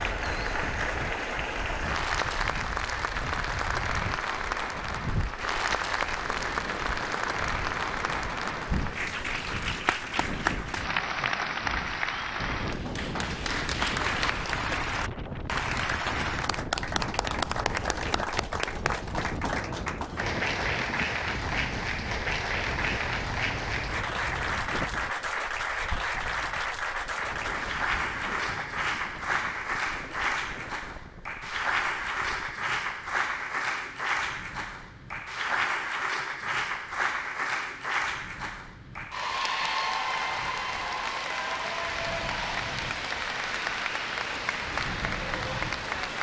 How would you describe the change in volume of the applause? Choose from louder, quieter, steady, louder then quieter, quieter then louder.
steady.